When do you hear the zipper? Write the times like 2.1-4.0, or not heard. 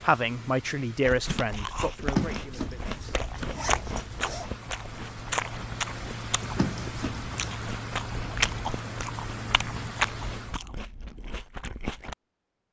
1.9-4.5, 6.4-7.6.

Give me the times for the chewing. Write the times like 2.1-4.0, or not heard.
1.0-12.2.